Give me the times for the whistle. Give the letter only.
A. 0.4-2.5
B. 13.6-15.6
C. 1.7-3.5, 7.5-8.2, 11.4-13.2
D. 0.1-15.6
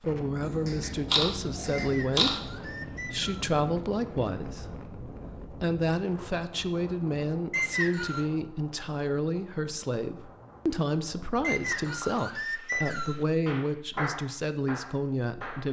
C.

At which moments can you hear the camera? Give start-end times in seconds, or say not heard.
0.4-2.5.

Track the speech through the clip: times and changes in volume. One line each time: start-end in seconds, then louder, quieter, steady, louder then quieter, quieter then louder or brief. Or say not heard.
0.1-15.6 steady.